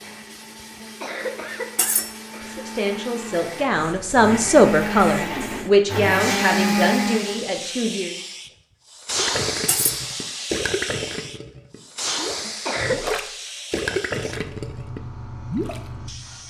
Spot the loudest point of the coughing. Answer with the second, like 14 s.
13 s.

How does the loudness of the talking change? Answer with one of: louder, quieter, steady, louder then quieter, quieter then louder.
louder then quieter.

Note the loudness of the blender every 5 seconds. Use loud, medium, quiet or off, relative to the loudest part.
medium, loud, off, off.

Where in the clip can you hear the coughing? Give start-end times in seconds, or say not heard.
0.8-2.7, 12.4-13.1.